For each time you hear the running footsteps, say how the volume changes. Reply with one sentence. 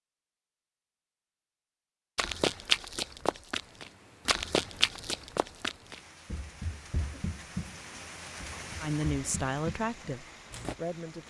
The running footsteps can be heard from 2.1 to 10.8 s, getting quieter.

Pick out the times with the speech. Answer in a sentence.
You can hear the speech from 8.8 to 11.2 s.